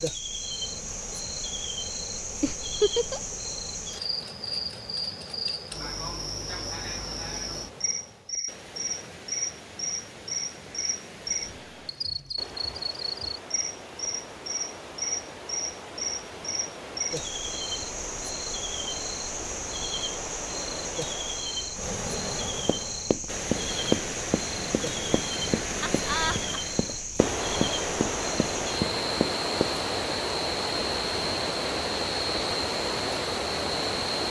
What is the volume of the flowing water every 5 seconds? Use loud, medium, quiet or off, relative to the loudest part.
quiet, quiet, quiet, medium, medium, loud, loud.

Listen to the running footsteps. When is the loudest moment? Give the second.
24 s.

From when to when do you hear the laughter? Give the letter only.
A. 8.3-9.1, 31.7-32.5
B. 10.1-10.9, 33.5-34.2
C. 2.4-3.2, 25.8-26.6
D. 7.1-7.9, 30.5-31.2
C.